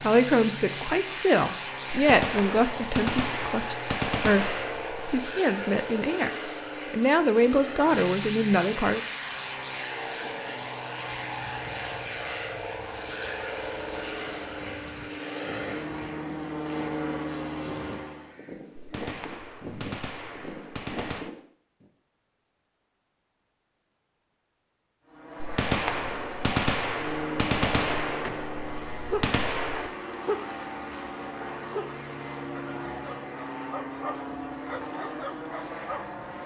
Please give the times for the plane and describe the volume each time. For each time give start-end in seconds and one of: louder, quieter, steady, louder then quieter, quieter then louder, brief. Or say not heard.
0.0-18.4 steady
25.1-36.4 steady.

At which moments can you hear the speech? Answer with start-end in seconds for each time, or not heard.
0.0-4.5, 5.1-9.0.